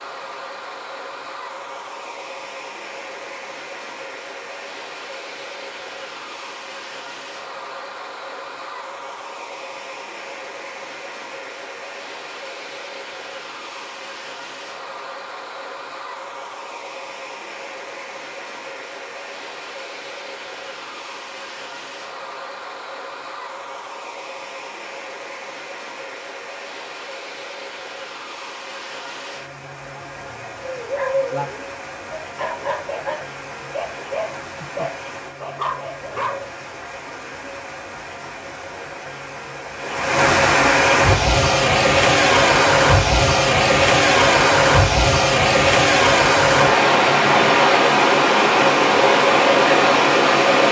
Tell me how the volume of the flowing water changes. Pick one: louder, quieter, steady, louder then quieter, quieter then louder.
louder.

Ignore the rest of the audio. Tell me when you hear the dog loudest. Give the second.
31 s.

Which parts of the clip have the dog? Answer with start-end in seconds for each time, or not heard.
30.6-36.5.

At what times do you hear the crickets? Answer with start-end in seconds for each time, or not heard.
not heard.